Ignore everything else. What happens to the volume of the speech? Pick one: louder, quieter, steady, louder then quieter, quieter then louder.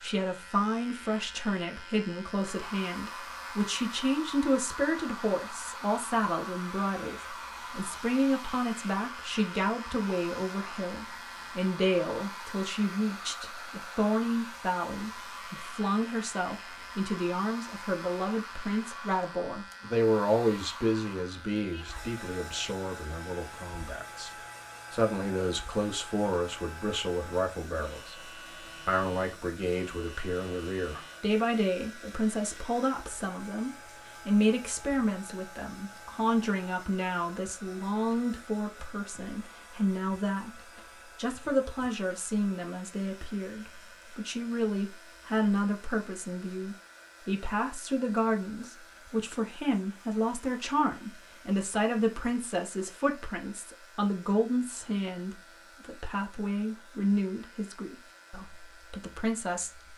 steady.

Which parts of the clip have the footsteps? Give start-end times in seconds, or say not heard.
not heard.